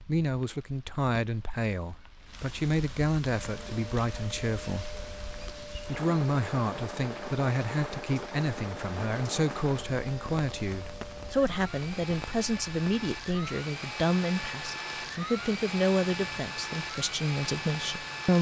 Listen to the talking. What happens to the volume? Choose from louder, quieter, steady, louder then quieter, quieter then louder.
steady.